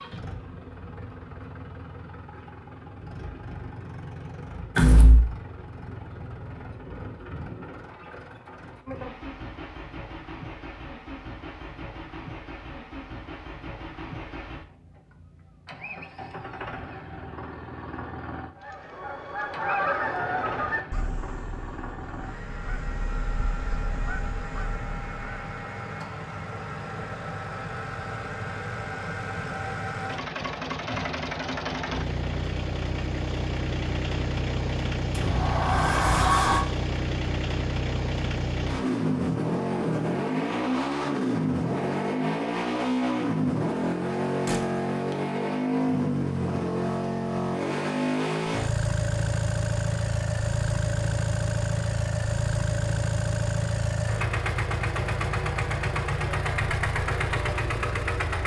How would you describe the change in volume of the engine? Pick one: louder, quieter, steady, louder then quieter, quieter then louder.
louder.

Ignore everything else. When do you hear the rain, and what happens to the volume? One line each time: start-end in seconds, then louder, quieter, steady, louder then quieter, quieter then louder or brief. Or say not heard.
not heard.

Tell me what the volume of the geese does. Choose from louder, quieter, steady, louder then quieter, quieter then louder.
quieter then louder.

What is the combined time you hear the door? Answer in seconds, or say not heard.
3 s.